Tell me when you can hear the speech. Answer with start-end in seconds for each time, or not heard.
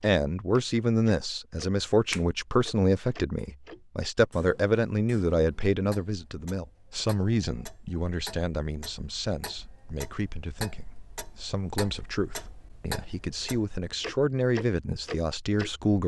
0.0-16.0.